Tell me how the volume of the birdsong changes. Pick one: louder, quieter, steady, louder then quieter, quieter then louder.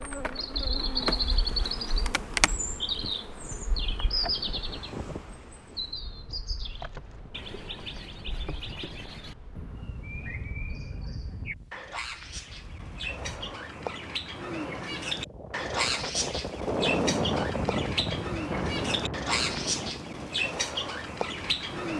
quieter then louder.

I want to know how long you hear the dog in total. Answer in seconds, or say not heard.
not heard.